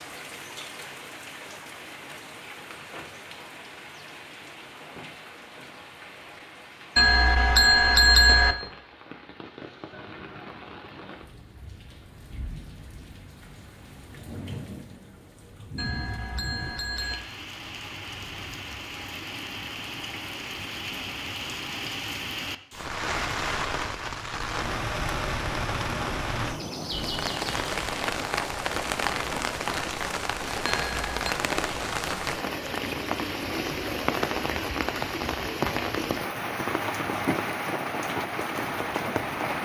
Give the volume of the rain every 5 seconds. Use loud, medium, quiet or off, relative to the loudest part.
quiet, quiet, quiet, medium, loud, loud, loud, loud.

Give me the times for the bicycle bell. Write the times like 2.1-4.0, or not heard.
7.0-8.6, 15.8-17.2, 30.6-31.1.